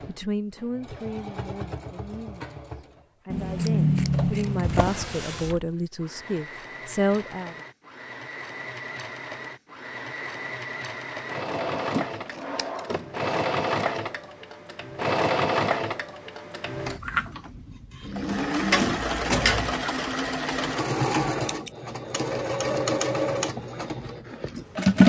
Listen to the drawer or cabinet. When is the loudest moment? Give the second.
19 s.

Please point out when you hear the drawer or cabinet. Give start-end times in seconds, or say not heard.
4.6-5.7, 11.4-13.3, 18.7-19.8.